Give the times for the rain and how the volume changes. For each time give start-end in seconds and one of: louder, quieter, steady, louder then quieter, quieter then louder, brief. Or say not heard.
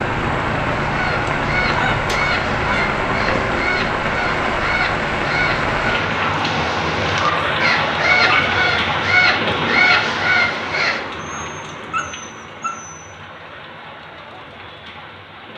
0.0-15.5 quieter.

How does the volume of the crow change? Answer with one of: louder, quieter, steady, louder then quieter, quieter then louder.
louder.